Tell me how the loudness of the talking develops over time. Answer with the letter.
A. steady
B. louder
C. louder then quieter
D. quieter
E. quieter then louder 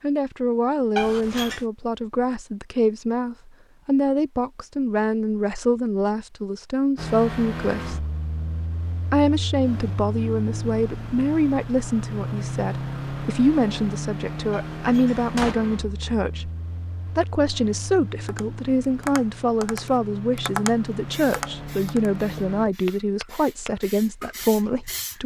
A.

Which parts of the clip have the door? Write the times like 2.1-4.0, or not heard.
0.9-1.6, 14.5-15.6.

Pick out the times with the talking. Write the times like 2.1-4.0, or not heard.
0.0-8.1, 9.1-16.5, 17.1-25.2.